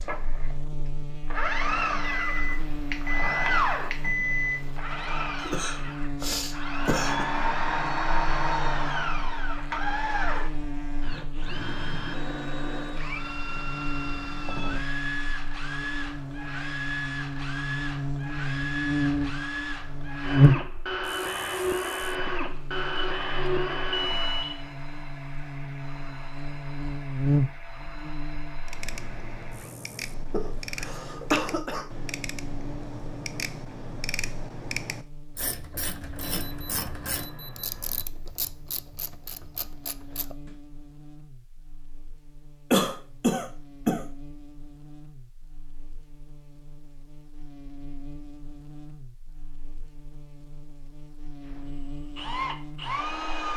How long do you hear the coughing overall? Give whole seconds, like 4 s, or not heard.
5 s.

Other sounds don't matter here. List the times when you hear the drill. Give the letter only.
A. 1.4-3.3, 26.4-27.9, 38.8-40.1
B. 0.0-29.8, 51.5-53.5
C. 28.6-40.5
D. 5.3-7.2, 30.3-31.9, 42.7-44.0
B.